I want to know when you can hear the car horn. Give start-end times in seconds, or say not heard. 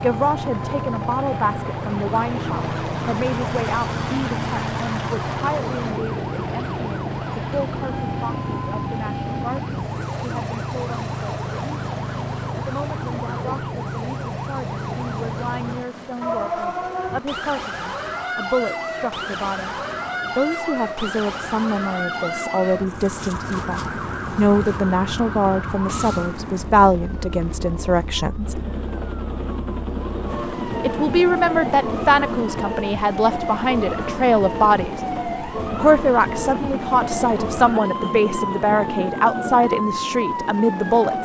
not heard.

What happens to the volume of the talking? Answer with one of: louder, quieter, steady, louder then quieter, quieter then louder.
quieter then louder.